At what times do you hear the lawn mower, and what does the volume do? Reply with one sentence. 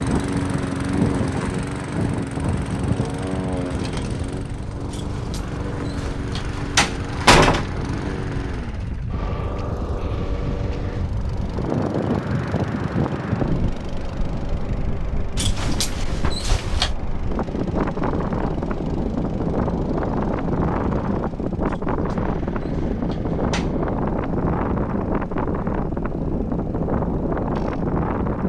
You can hear the lawn mower from 0.0 to 28.4 s, getting quieter.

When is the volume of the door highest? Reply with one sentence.
The volume of the door peaks at 7 seconds.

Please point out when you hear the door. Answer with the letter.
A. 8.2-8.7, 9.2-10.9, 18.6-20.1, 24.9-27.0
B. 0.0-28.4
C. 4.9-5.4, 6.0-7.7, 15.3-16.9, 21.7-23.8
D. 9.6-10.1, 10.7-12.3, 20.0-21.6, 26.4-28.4
C.